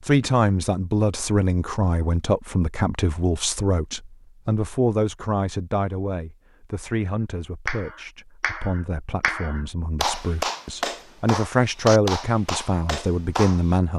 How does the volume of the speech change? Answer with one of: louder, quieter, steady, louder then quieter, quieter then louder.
quieter then louder.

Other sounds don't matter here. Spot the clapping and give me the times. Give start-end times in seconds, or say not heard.
7.7-13.8.